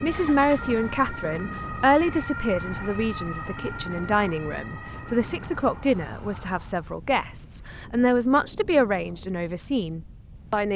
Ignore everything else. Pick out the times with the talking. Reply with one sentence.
The talking can be heard from 0.0 to 10.7 s.